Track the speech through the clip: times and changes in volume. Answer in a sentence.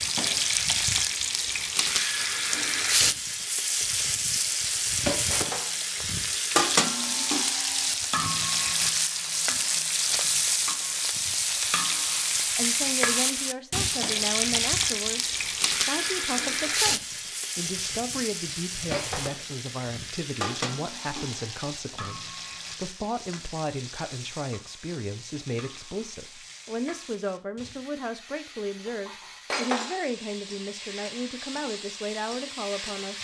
The speech can be heard from 12.6 to 33.1 s, at a steady volume.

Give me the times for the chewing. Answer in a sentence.
The chewing can't be heard in this clip.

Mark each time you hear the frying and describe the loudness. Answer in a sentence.
The frying can be heard from 0.0 to 33.1 s, getting quieter.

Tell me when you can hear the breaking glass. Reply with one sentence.
You can hear the breaking glass from 5.3 to 5.8 s, from 18.9 to 19.4 s and from 29.4 to 29.9 s.